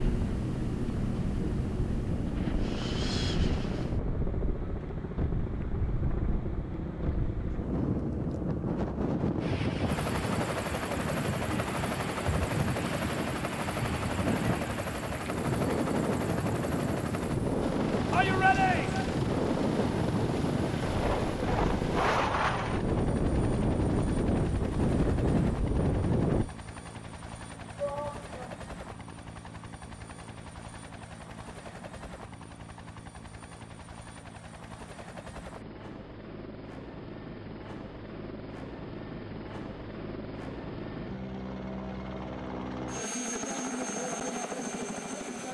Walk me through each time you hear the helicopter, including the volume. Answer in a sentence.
The helicopter can be heard from 0.0 to 45.5 s, getting quieter then louder.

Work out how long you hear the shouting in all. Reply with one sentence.
You can hear the shouting for 2 seconds altogether.